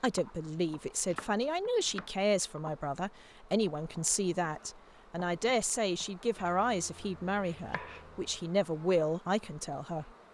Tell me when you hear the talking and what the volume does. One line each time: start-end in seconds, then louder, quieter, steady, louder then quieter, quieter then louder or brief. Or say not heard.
0.0-10.1 steady.